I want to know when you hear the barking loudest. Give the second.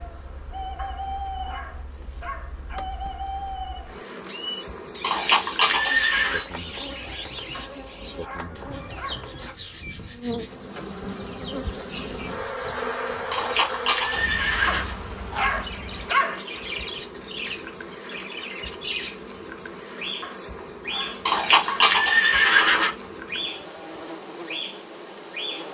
16 s.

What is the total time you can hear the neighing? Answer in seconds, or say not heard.
5 s.